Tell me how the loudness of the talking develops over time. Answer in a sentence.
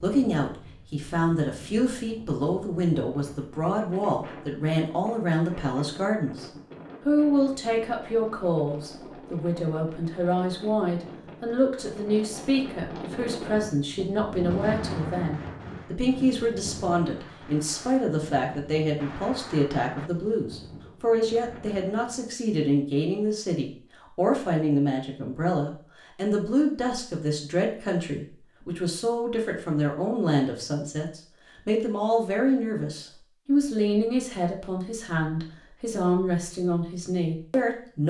The loudness of the talking stays about the same.